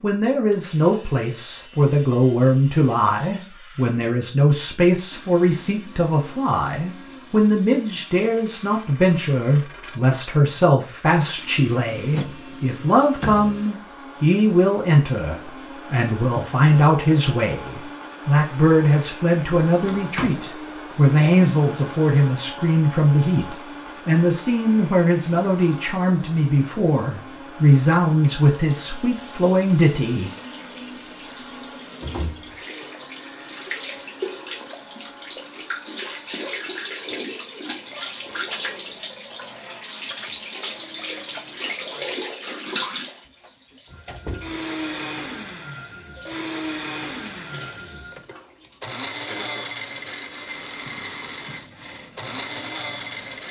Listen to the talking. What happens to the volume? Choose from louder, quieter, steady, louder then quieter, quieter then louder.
steady.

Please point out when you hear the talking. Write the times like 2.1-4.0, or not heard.
0.0-30.3.